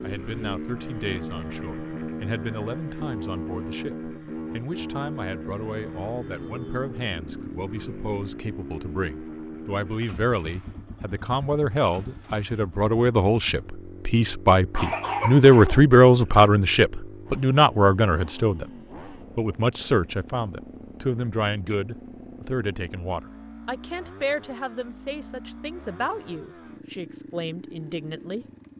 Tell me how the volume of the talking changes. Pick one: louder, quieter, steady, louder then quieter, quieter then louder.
louder then quieter.